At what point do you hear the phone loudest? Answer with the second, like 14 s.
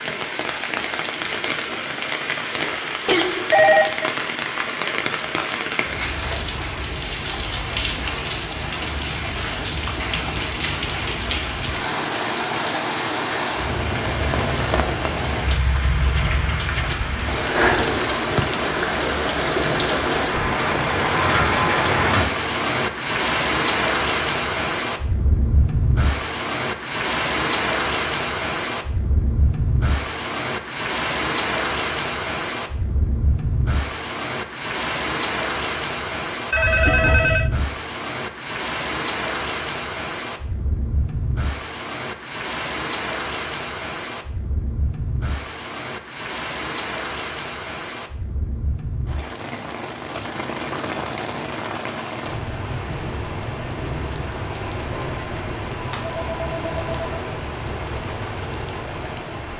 4 s.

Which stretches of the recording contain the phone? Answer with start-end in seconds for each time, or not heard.
3.0-4.1, 36.5-37.5, 54.9-57.1.